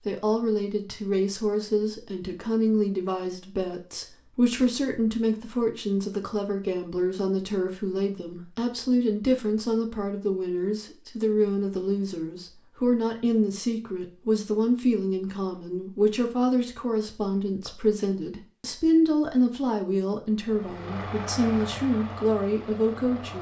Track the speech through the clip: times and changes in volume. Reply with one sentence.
You can hear the speech from 0.0 to 23.3 s, at a steady volume.